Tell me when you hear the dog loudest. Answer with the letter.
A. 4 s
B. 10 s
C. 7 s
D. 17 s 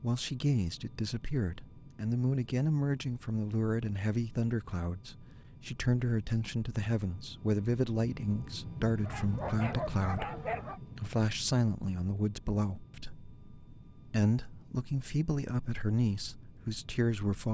B.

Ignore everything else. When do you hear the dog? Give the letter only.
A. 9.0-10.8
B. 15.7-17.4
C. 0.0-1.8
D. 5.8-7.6
A.